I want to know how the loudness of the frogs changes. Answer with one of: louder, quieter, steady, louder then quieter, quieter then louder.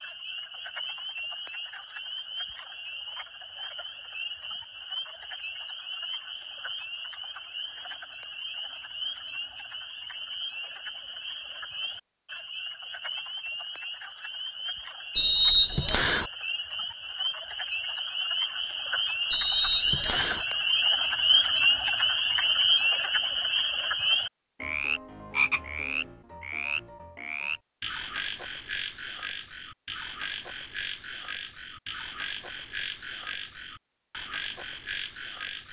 louder then quieter.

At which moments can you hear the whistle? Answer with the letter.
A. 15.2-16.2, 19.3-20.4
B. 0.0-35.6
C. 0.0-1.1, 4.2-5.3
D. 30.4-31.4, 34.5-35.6
A.